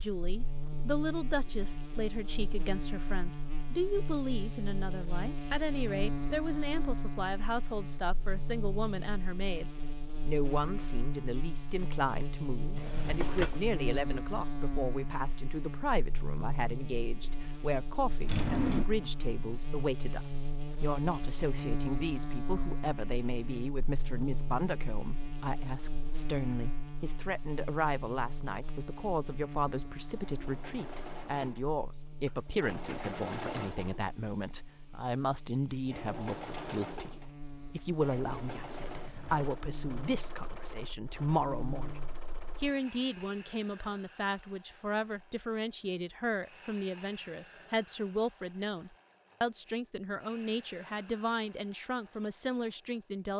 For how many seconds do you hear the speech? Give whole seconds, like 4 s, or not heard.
53 s.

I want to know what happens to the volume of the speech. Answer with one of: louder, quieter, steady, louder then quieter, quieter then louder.
steady.